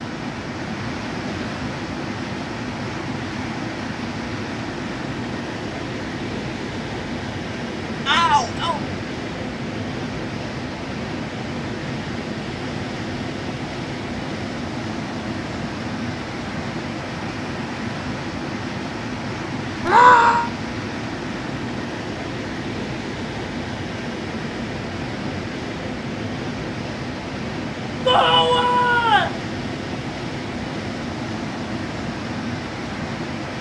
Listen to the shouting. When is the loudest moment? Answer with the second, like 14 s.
20 s.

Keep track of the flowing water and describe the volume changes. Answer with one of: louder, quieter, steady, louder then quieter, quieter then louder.
steady.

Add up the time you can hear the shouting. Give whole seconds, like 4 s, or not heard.
3 s.